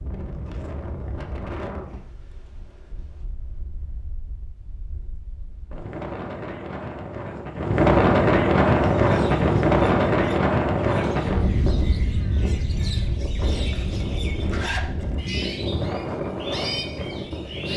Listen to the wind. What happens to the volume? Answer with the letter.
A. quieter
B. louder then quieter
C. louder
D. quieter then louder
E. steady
B.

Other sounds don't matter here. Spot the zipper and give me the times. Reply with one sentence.
The zipper can be heard from 13.6 to 15.3 s.